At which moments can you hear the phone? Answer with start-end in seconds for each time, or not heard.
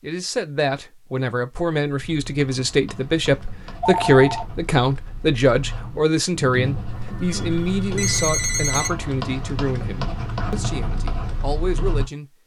3.8-4.5, 6.8-8.9.